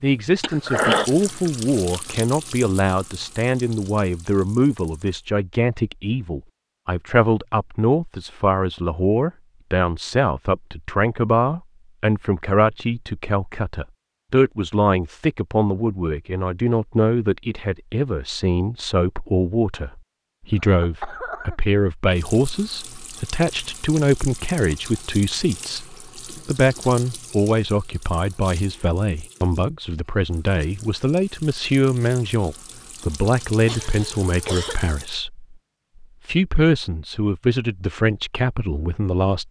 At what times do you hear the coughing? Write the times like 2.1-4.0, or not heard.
0.4-1.1, 20.6-21.6, 33.6-34.9.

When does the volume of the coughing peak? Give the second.
1 s.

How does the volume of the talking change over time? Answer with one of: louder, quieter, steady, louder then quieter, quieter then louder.
steady.